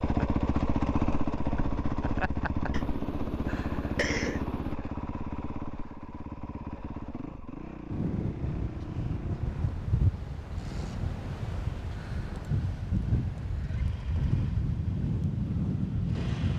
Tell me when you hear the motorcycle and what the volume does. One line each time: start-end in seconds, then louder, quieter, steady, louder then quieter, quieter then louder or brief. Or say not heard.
0.0-16.5 quieter.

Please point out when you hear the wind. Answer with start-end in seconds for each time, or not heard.
7.9-16.5.